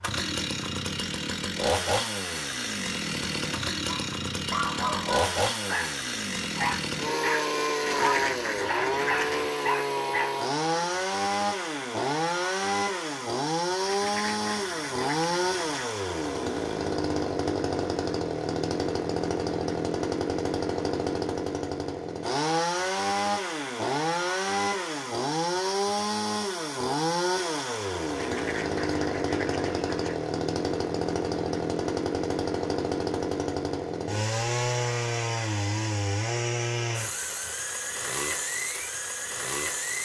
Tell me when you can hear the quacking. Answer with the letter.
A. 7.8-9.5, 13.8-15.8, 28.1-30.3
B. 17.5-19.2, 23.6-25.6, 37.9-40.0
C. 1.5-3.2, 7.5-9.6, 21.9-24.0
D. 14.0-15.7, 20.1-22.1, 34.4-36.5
A.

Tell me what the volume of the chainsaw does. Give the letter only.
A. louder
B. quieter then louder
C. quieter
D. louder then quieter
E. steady
E.